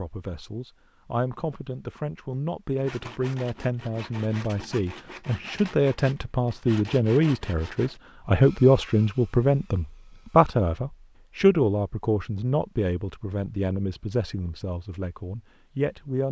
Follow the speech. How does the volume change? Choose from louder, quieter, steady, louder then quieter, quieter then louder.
louder then quieter.